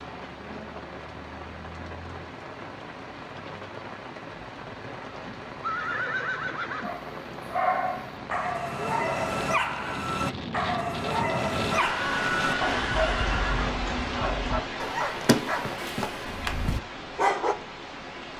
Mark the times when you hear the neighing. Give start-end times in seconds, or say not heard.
5.2-6.9, 11.7-13.8.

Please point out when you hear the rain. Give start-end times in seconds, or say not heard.
0.0-18.3.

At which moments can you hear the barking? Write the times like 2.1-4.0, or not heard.
6.8-17.6.